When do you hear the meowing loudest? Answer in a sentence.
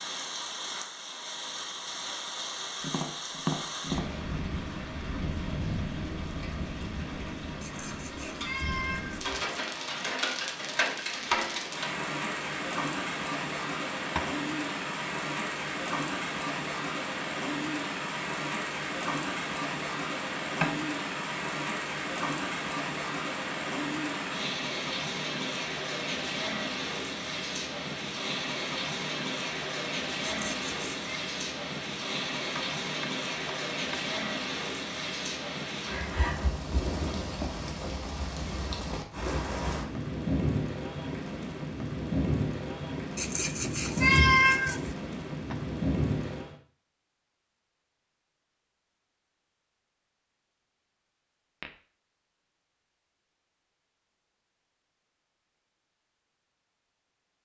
The volume of the meowing peaks at 44 seconds.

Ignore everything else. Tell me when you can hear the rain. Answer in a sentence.
The rain can be heard from 0.0 to 46.5 s.